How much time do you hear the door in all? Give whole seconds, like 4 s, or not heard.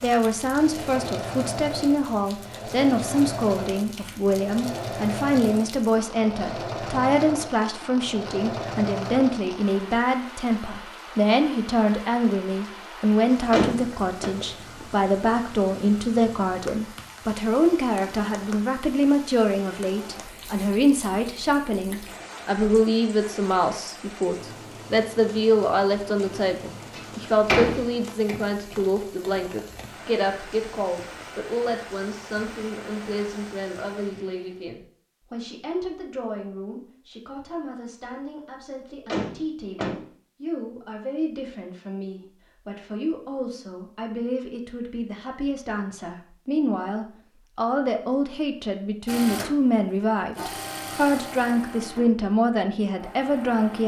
3 s.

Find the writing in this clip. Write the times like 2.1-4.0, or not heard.
not heard.